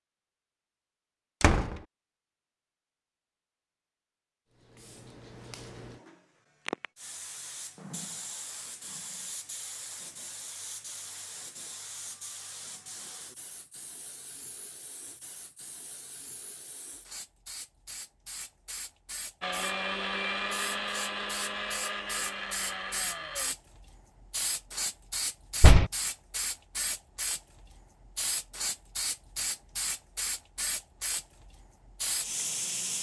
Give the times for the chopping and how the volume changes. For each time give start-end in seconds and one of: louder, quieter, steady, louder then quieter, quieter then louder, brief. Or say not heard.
not heard.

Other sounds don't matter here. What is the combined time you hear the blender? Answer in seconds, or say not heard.
4 s.